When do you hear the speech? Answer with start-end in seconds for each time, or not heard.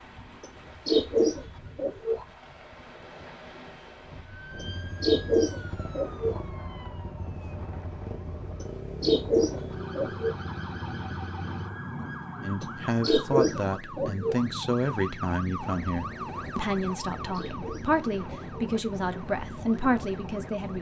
12.4-20.7.